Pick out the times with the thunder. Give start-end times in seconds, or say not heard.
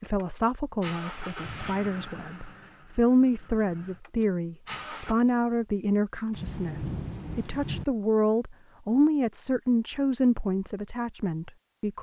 6.3-7.8.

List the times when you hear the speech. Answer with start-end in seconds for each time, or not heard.
0.0-11.9.